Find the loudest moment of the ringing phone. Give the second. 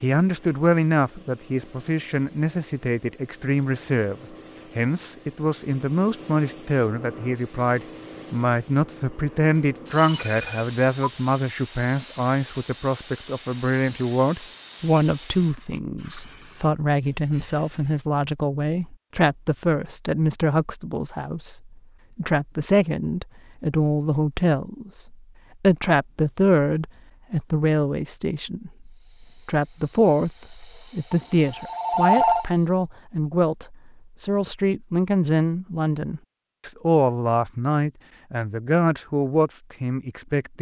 32 s.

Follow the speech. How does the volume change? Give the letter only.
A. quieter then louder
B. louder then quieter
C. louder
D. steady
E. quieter
D.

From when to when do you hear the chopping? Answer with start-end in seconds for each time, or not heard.
not heard.